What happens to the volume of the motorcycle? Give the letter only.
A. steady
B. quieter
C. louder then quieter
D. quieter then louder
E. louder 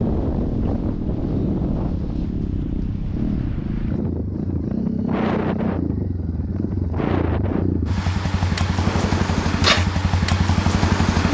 E.